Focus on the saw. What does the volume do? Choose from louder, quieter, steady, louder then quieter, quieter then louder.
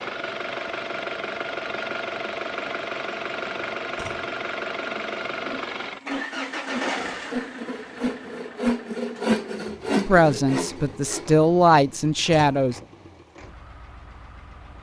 louder.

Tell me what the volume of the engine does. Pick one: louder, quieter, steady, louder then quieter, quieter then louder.
quieter.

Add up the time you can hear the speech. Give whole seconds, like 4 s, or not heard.
3 s.